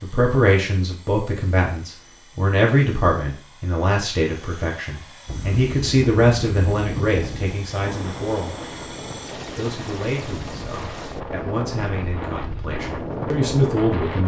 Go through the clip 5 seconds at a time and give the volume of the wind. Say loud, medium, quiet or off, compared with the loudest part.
off, loud, loud.